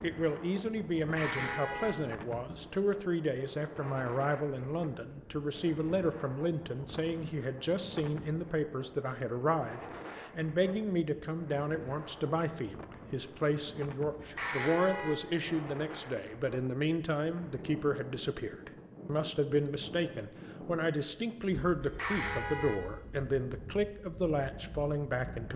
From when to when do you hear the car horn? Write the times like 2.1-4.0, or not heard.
0.9-1.9, 14.2-15.2, 21.8-22.8.